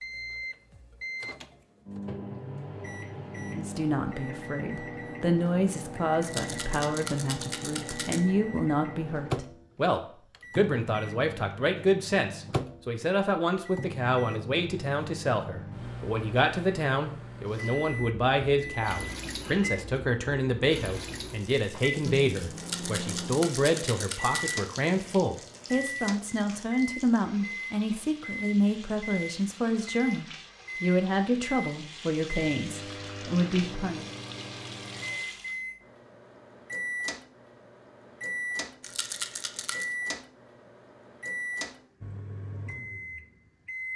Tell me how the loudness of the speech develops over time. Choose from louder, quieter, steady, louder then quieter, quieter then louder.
steady.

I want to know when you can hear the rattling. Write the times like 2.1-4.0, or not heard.
6.2-8.2, 22.6-24.6, 38.8-39.9.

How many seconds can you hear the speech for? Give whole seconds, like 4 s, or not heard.
31 s.